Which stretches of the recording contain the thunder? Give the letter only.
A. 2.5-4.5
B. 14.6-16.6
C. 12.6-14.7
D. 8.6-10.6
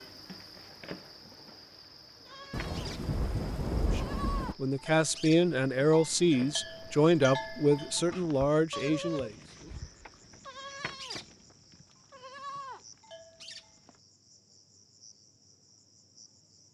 A.